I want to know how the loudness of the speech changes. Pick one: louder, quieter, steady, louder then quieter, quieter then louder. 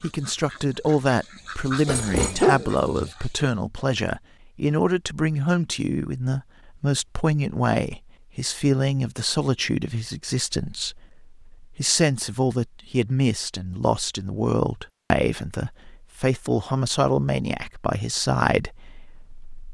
steady.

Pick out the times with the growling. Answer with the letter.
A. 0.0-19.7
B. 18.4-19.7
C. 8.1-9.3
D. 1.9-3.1
D.